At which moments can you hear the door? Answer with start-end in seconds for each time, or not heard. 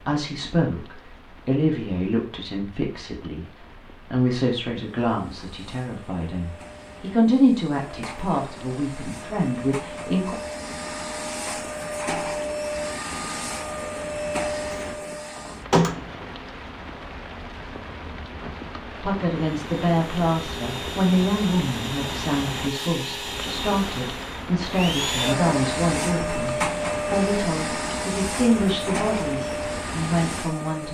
14.7-16.2.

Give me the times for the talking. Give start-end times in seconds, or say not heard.
0.1-10.3, 19.0-30.8.